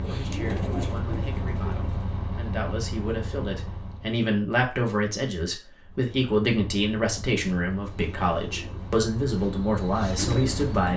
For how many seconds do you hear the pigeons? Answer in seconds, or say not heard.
5 s.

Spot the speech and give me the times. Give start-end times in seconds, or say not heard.
0.1-10.9.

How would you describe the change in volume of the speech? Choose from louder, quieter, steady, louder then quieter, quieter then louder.
louder.